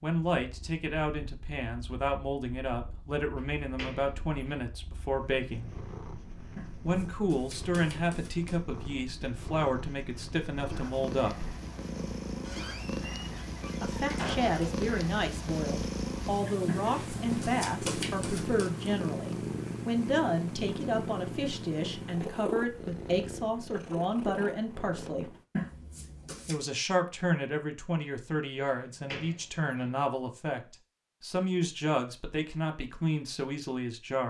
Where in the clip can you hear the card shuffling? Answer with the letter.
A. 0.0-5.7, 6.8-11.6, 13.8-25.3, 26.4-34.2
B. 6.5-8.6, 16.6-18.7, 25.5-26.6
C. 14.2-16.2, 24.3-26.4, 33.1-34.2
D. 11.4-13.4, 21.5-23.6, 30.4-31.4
B.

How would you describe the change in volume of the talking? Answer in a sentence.
The loudness of the talking stays about the same.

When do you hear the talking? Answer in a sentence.
You can hear the talking from 0.0 to 5.7 s, from 6.8 to 11.6 s, from 13.8 to 25.3 s and from 26.4 to 34.2 s.